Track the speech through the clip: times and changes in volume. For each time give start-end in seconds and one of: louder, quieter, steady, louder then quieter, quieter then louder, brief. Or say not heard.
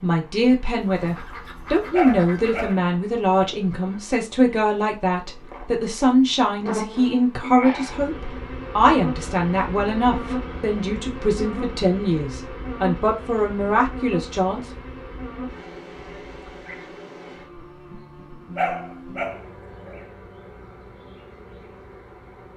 0.0-14.7 steady.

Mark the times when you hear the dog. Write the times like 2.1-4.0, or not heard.
1.9-3.6, 18.6-20.1.